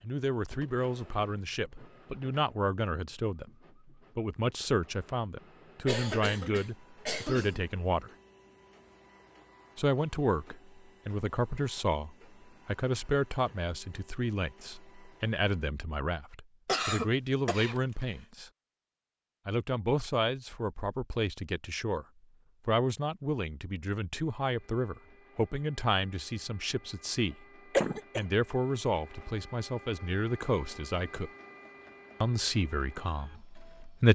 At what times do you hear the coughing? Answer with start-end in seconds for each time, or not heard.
5.8-7.7, 16.6-18.1, 27.7-28.2.